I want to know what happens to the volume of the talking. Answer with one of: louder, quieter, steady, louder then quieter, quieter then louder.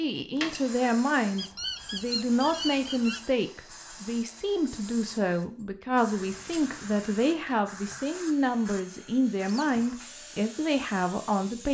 steady.